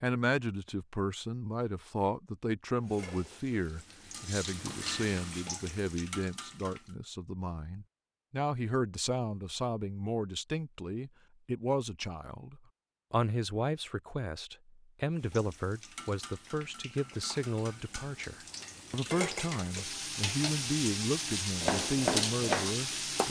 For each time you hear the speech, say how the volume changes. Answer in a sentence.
The speech can be heard from 0.0 to 23.2 s, at a steady volume.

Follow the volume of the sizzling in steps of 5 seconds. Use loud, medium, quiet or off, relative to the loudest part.
medium, medium, off, medium, loud.